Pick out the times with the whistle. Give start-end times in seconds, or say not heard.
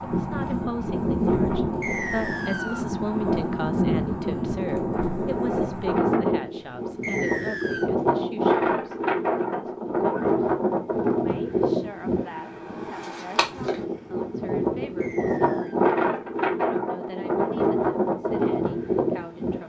1.8-2.9, 7.0-7.9, 15.0-15.8.